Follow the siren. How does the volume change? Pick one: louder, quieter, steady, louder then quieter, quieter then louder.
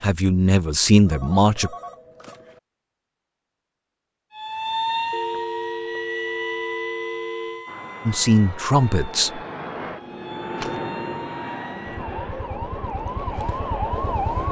quieter then louder.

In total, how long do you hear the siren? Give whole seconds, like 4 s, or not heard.
10 s.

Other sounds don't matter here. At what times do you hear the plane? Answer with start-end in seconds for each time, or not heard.
7.7-14.4.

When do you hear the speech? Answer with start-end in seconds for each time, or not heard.
0.0-1.7, 8.1-9.4.